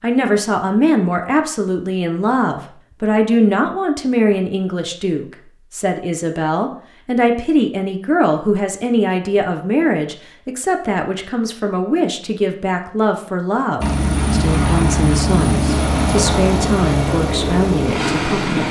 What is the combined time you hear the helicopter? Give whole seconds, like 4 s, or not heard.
5 s.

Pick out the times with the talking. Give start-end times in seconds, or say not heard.
0.0-18.6.